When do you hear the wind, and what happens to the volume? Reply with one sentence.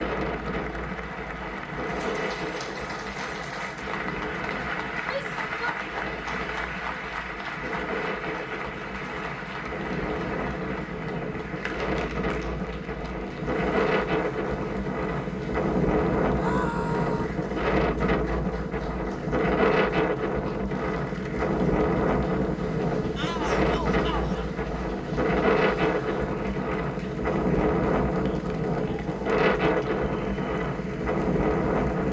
You can hear the wind from 0.0 to 32.0 s, getting louder.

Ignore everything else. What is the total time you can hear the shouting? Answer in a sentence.
You can hear the shouting for 3 seconds altogether.